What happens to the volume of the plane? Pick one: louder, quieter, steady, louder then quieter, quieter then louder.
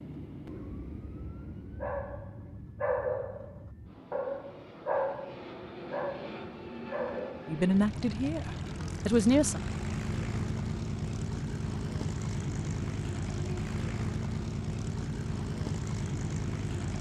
louder.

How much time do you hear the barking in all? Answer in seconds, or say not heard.
6 s.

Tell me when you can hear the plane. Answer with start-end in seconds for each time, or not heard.
0.0-16.9.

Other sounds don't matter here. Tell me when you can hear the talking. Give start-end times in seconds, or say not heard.
7.5-9.6.